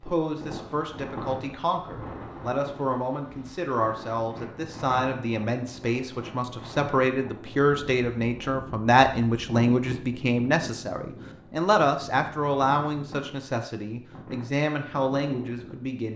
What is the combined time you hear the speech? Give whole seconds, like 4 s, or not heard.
16 s.